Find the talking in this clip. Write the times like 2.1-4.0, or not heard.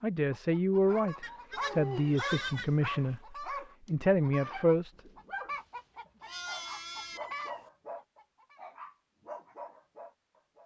0.0-4.9.